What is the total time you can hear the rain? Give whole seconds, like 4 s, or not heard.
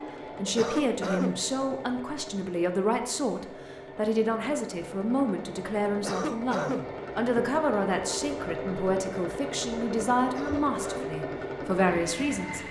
not heard.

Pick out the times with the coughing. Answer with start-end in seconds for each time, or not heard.
0.5-1.4, 6.0-6.9, 10.2-11.2.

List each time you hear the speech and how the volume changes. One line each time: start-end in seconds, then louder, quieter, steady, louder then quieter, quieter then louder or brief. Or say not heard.
0.3-12.6 steady.